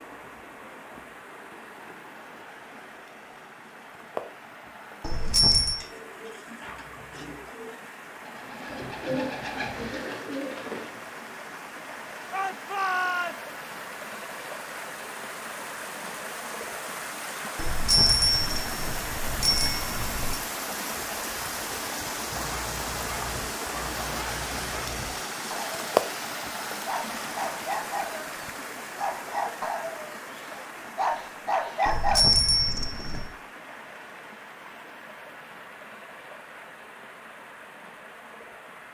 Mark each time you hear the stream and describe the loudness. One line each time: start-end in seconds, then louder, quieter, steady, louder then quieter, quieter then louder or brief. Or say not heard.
0.0-38.8 louder then quieter.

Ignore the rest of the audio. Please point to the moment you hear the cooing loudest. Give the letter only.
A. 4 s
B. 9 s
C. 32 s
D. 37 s
B.